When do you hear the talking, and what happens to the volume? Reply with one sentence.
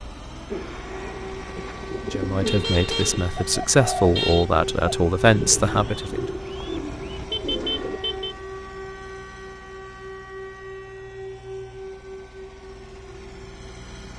The talking can be heard from 2.0 to 6.3 s, getting louder.